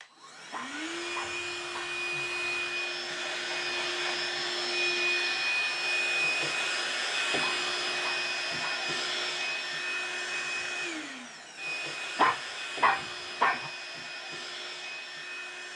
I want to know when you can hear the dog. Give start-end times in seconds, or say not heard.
0.5-2.0, 7.4-8.9, 12.2-13.7.